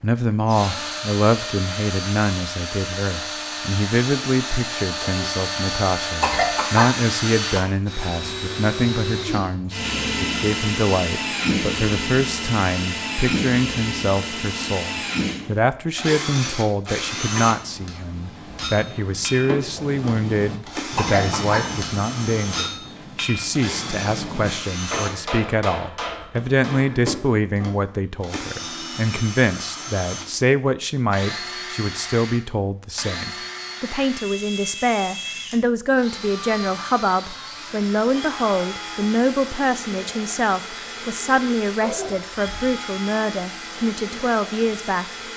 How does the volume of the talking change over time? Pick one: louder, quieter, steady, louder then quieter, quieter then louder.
steady.